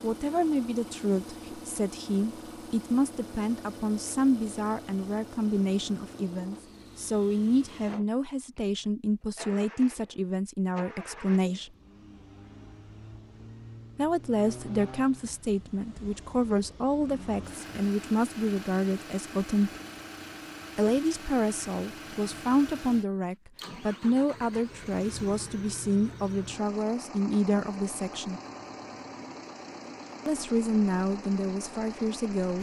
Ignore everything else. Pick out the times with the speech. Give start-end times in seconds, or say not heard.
0.0-11.7, 13.9-19.8, 20.8-28.4, 30.2-32.5.